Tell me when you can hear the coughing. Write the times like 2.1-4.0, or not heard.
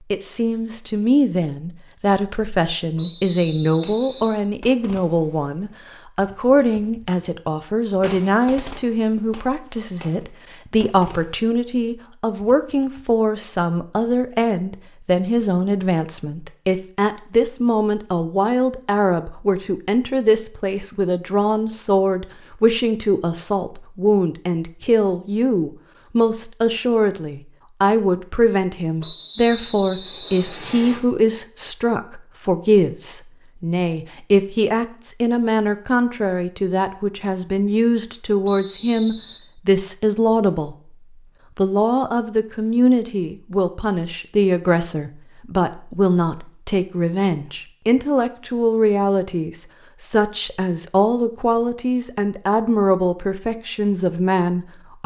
not heard.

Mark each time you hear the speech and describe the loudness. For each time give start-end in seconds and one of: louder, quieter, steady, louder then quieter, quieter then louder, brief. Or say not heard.
0.1-40.8 steady
41.5-55.0 steady.